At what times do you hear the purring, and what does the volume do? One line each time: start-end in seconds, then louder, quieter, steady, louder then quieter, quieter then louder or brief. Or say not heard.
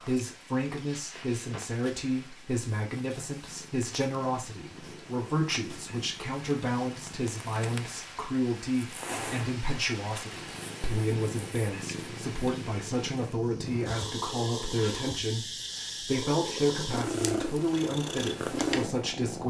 0.0-19.4 louder.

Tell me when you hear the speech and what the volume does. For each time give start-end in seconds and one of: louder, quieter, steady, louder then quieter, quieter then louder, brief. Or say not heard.
0.1-19.4 steady.